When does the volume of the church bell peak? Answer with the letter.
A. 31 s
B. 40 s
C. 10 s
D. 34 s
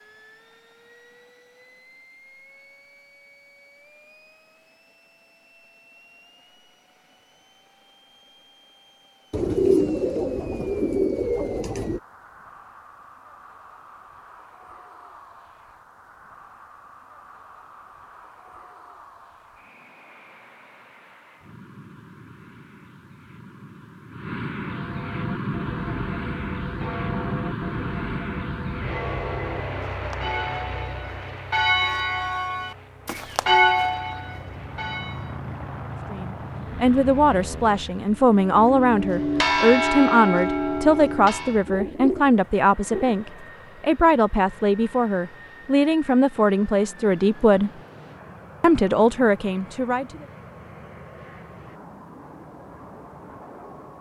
D.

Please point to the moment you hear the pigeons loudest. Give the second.
10 s.